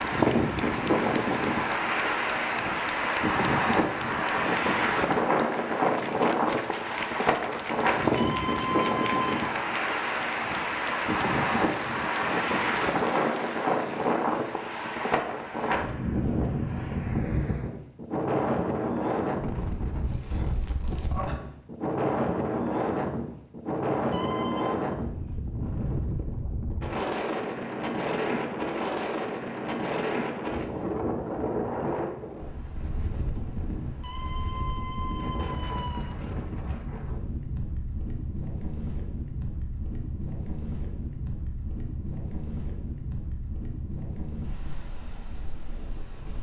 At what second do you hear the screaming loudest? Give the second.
9 s.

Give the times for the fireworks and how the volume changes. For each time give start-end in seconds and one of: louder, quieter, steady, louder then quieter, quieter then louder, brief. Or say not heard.
not heard.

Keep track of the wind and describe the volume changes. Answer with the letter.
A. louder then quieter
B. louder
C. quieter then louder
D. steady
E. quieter
E.